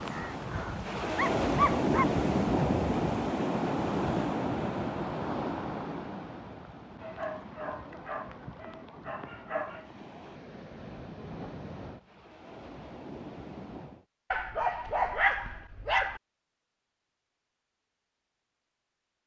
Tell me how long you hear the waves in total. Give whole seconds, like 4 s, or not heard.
14 s.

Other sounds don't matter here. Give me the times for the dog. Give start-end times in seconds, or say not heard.
0.5-2.0, 7.0-9.8, 14.3-16.2.